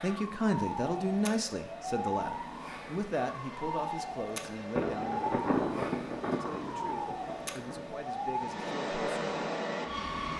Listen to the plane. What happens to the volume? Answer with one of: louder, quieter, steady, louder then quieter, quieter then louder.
louder.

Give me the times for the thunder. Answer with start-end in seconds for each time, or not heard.
4.8-8.0.